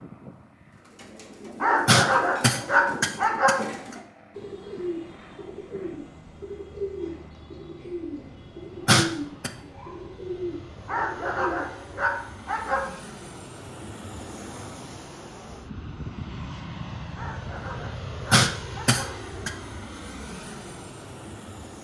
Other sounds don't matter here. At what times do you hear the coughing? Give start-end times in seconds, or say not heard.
1.9-3.5, 8.8-9.5, 18.3-19.5.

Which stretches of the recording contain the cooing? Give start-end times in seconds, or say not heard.
0.8-11.7.